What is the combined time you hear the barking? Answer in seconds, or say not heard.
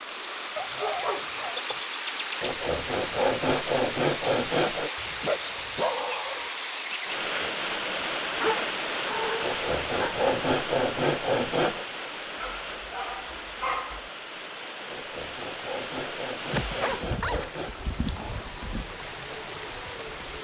7 s.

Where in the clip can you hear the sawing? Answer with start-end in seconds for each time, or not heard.
2.4-4.9, 9.4-11.8, 14.9-17.8.